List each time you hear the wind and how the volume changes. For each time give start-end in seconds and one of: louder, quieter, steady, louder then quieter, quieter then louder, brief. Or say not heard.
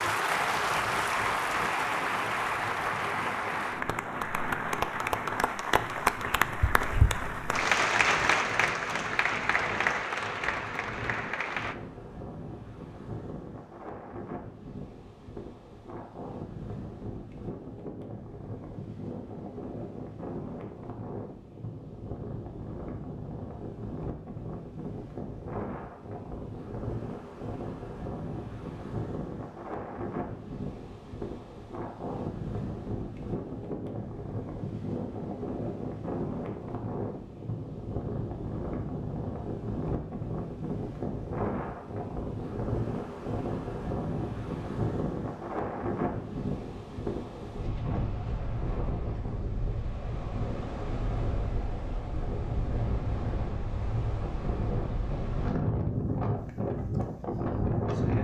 0.1-58.1 louder.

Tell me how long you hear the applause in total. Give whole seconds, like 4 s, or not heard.
12 s.